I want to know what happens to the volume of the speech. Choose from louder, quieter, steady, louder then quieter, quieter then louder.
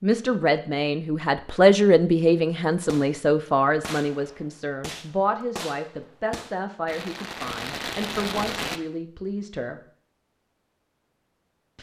quieter.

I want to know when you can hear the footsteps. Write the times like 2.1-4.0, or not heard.
not heard.